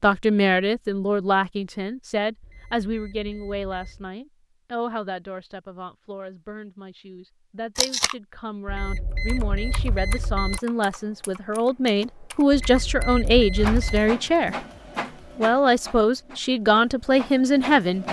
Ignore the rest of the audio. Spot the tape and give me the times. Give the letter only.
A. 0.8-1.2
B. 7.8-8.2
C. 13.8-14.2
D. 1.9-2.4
B.